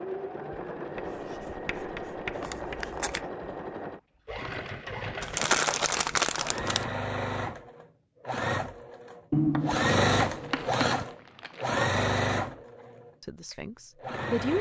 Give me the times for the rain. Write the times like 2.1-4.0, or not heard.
not heard.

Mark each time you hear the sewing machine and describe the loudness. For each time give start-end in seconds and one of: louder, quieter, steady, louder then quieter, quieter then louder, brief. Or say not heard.
0.0-14.5 louder.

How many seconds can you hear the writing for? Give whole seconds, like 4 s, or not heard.
4 s.